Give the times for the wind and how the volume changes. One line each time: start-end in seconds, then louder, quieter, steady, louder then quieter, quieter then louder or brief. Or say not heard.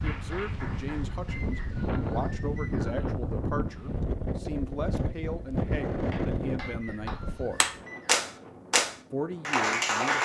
0.0-10.1 quieter.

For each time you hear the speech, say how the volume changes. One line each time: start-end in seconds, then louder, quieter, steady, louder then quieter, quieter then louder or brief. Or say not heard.
0.0-7.6 steady
9.1-10.1 brief.